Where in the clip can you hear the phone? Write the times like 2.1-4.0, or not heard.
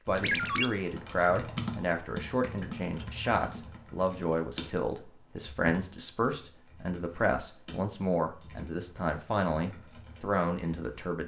0.2-0.7.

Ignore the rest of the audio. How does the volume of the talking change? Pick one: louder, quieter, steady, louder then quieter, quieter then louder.
steady.